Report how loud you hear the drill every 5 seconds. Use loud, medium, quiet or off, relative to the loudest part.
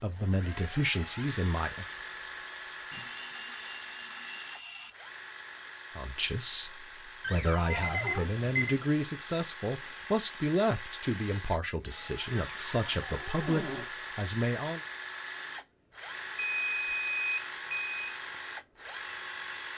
loud, medium, loud, loud.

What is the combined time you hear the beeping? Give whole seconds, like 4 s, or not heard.
5 s.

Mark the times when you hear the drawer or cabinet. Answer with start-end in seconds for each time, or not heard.
7.2-8.3, 12.3-13.8.